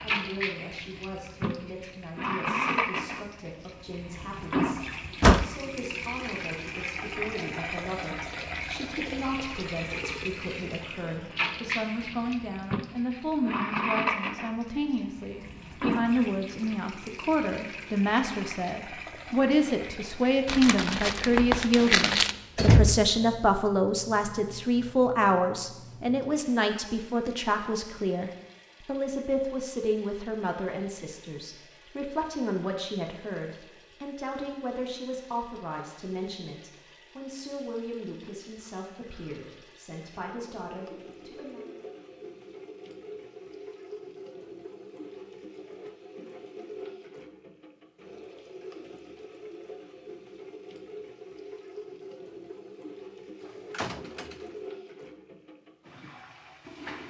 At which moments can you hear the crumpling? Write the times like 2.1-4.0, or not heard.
20.4-22.4.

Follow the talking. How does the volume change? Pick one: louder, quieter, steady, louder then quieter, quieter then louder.
louder then quieter.